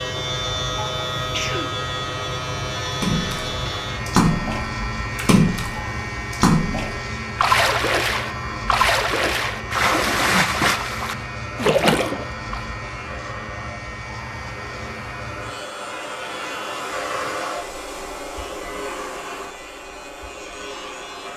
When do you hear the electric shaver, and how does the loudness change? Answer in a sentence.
The electric shaver can be heard from 0.0 to 21.3 s, getting quieter.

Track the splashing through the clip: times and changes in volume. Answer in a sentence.
You can hear the splashing from 3.0 to 12.6 s, at a steady volume.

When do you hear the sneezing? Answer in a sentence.
You can hear the sneezing from 1.1 to 1.8 s.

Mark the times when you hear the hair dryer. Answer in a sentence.
The hair dryer can be heard from 0.0 to 21.3 s.